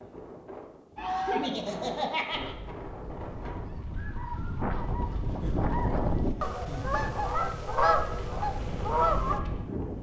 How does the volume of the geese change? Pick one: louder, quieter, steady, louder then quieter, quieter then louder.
louder.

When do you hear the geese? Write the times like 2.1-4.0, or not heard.
0.9-9.4.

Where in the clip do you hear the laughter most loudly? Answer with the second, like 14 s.
2 s.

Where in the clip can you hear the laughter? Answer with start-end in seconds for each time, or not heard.
1.2-2.5, 5.3-7.0.